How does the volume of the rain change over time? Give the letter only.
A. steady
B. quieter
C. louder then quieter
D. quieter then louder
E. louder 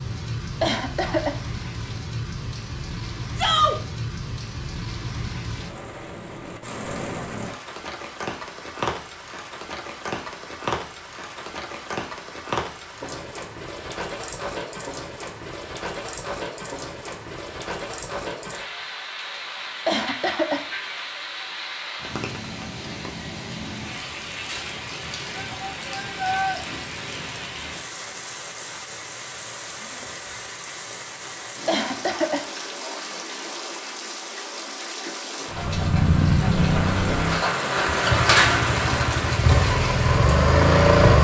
E.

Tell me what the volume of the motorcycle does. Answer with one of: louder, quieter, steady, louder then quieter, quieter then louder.
quieter then louder.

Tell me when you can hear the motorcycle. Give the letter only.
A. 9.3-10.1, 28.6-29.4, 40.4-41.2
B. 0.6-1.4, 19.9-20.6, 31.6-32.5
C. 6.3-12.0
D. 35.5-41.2
D.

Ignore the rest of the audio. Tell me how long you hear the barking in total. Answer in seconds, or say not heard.
not heard.